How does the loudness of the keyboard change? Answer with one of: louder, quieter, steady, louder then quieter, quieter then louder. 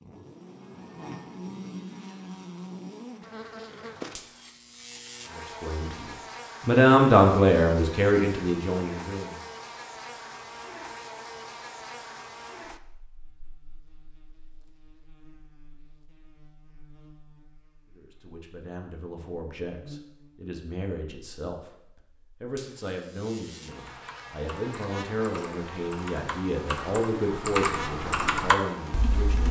louder.